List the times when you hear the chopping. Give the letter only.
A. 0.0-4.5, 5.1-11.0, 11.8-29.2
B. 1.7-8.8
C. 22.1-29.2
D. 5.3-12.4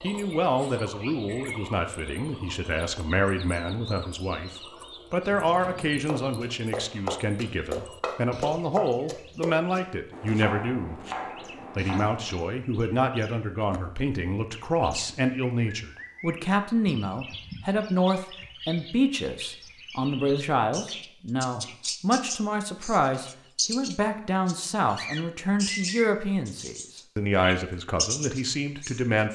D.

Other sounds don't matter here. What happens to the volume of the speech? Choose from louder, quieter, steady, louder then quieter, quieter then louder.
steady.